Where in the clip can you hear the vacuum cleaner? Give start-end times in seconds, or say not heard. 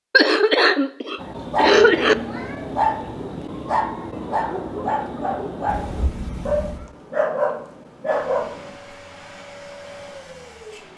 8.1-10.9.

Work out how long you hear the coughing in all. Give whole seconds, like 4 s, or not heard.
2 s.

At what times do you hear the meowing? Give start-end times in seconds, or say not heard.
2.2-2.8, 5.7-6.9.